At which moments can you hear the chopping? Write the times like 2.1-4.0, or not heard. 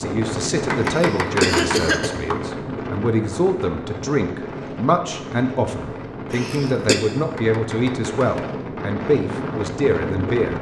0.7-2.4, 7.3-8.6.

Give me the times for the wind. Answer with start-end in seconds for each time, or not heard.
0.0-10.5.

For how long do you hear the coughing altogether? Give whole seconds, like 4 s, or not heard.
2 s.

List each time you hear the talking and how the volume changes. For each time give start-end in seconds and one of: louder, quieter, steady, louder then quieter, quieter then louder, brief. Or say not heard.
0.0-10.5 steady.